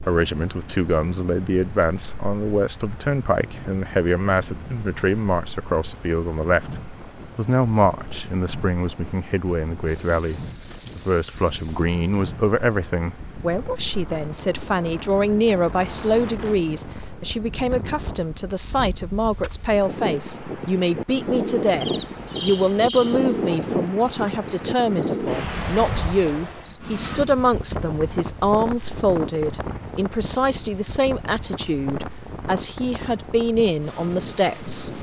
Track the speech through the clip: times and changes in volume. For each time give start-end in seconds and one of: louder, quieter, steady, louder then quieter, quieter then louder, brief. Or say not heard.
0.1-34.9 steady.